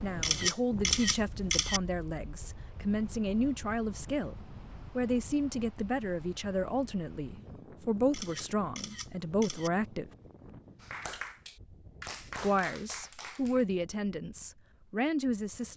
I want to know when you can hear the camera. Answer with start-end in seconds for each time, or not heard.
0.2-1.8, 8.1-9.7.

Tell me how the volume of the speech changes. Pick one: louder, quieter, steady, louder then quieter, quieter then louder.
steady.